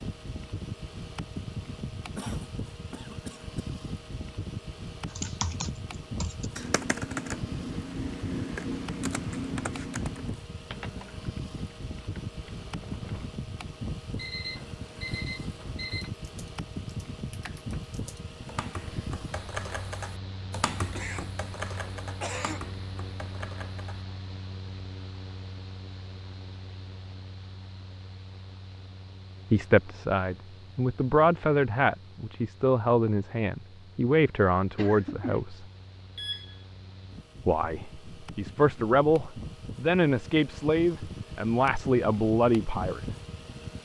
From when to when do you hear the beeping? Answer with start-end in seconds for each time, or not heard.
14.2-16.1, 36.1-36.6.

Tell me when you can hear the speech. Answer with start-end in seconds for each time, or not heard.
29.5-35.6, 37.5-43.1.